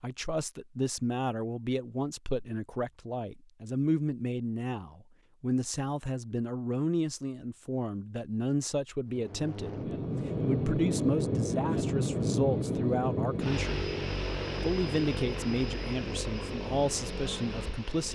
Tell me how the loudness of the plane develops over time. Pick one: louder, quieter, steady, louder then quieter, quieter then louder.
quieter.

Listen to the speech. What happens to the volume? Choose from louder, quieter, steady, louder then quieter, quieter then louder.
steady.